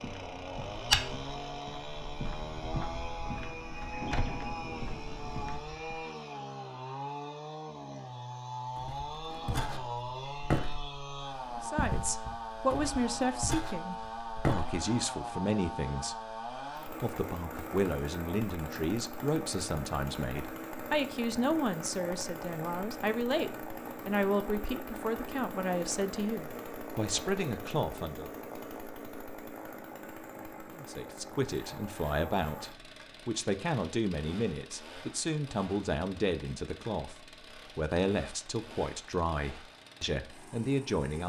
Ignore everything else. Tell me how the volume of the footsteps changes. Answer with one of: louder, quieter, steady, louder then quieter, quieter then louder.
quieter then louder.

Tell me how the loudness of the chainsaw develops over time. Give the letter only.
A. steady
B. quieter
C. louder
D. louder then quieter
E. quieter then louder
B.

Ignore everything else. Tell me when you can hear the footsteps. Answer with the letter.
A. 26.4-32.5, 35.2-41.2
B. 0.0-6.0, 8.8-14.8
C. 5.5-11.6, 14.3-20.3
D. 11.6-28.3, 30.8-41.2
B.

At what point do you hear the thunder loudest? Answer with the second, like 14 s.
4 s.